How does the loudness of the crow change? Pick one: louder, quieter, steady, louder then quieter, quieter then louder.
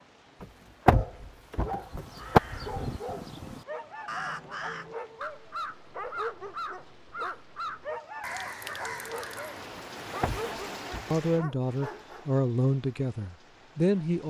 steady.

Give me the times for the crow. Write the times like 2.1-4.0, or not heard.
1.8-9.7.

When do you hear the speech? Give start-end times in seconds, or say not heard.
11.1-14.2.